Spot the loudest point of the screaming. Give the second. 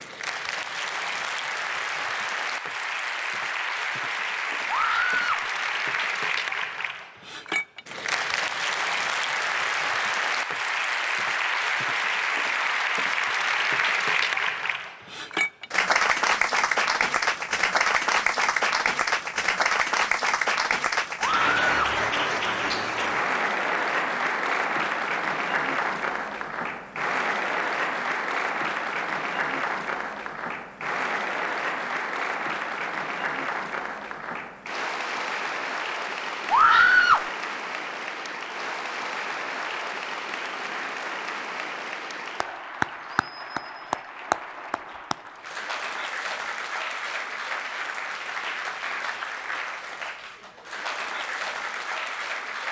37 s.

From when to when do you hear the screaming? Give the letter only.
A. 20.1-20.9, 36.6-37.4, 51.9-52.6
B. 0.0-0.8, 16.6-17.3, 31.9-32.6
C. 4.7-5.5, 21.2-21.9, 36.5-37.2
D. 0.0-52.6
C.